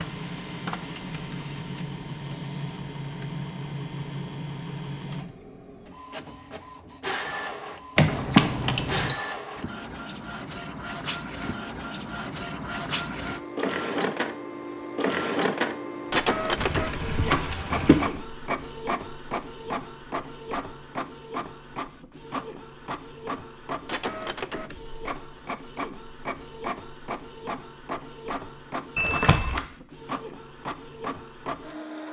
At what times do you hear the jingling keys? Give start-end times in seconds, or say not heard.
8.0-9.2, 16.6-18.1, 28.9-29.6.